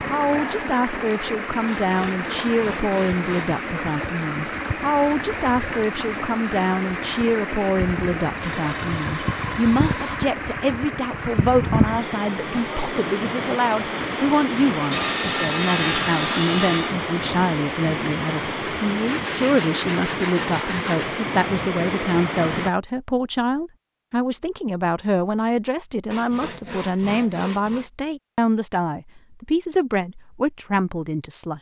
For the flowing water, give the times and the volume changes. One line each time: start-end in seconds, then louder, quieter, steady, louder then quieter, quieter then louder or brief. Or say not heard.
0.0-22.7 steady.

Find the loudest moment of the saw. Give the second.
16 s.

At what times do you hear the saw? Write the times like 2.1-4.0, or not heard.
1.6-3.5, 8.4-10.3, 14.9-16.9, 19.1-21.1, 26.1-27.9.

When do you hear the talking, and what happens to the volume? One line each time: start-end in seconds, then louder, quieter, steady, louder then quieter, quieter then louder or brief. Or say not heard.
0.1-31.5 steady.